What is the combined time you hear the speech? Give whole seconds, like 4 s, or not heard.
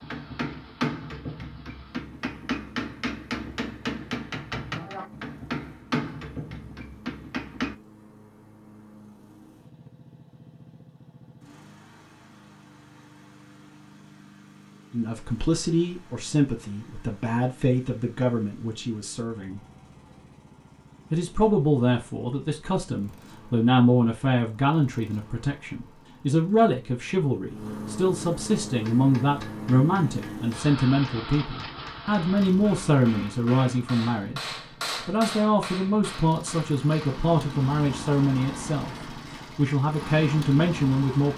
25 s.